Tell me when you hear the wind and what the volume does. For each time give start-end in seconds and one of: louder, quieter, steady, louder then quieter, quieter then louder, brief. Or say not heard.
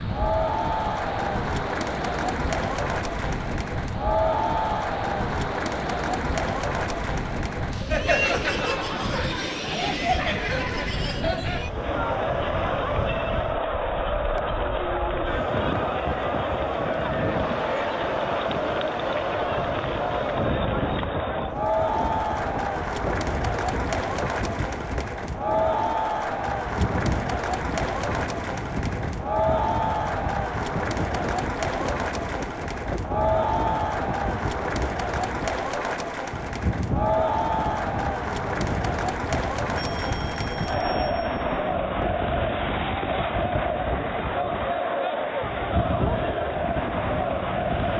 0.0-47.9 steady.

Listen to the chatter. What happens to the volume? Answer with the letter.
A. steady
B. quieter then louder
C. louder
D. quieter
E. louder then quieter
A.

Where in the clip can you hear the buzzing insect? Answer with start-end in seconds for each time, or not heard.
not heard.